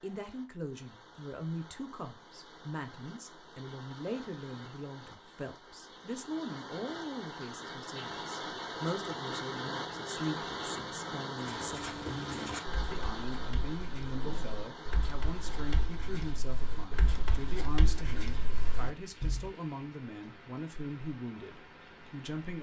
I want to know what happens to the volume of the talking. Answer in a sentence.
The volume of the talking stays about the same.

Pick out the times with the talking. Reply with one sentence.
The talking can be heard from 0.0 to 22.5 s.